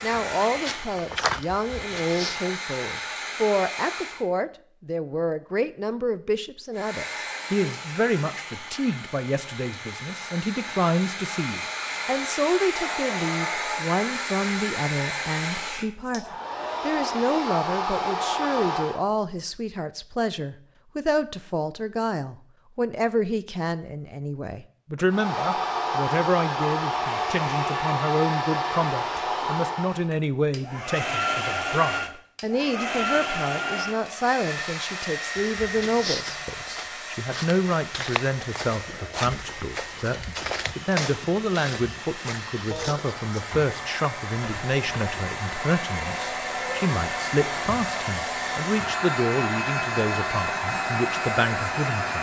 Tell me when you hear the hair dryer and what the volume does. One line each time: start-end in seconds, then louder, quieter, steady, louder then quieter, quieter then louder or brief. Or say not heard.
0.0-4.2 quieter then louder
6.8-19.1 louder
25.1-52.1 quieter then louder.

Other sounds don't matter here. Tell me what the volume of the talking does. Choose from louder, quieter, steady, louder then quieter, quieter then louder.
steady.